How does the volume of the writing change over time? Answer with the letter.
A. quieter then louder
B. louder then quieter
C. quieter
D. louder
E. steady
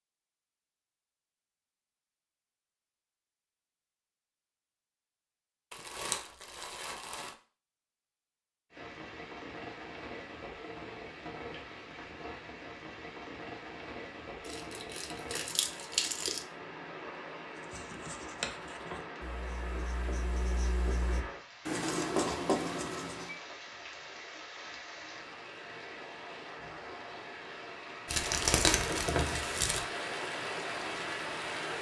A.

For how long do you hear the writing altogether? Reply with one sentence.
The writing can be heard for 6 seconds in total.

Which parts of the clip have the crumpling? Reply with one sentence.
You can hear the crumpling from 5.7 to 7.3 s, from 14.4 to 16.4 s and from 28.1 to 29.9 s.